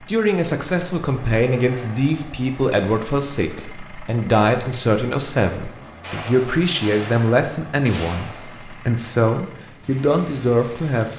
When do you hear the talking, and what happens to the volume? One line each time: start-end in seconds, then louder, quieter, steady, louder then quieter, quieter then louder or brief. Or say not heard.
0.0-11.1 steady.